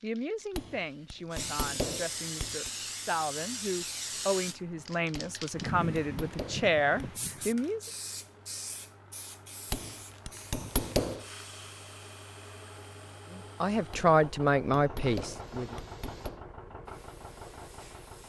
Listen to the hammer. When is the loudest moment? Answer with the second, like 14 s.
11 s.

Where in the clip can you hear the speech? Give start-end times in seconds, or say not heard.
0.0-7.8, 13.3-15.8.